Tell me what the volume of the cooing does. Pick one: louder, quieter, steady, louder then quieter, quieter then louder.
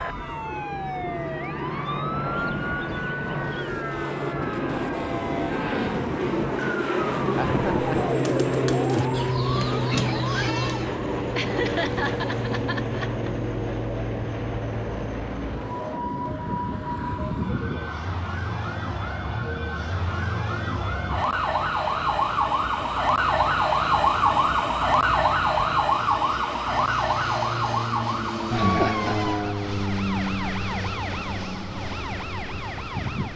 louder.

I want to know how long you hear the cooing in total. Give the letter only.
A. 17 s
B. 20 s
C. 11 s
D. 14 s
C.